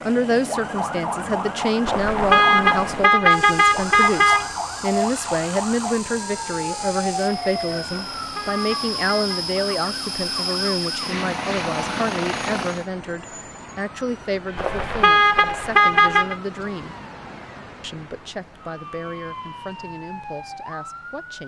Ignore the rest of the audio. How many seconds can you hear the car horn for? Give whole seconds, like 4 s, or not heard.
6 s.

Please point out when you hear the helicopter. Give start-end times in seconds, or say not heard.
0.0-12.9.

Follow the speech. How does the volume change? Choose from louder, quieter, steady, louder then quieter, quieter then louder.
quieter.